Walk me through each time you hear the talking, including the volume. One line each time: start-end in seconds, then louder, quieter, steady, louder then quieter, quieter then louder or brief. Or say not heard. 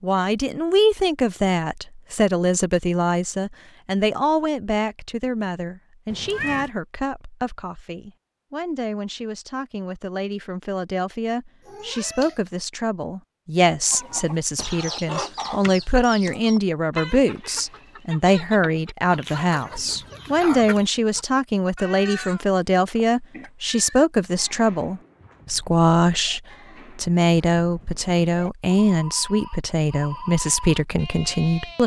0.0-31.8 quieter then louder.